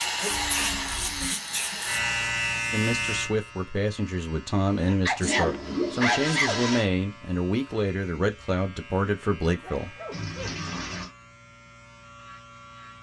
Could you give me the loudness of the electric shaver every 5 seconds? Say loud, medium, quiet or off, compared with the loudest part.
loud, quiet, quiet.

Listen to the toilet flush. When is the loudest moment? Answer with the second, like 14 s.
6 s.